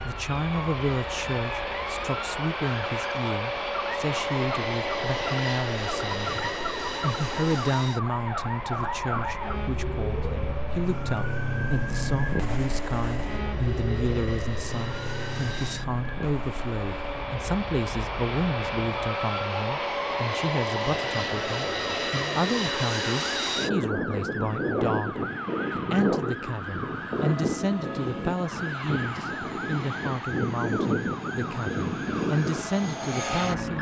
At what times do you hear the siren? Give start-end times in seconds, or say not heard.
0.0-33.7.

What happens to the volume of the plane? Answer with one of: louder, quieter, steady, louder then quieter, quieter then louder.
quieter then louder.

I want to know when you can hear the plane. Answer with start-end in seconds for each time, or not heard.
0.0-33.7.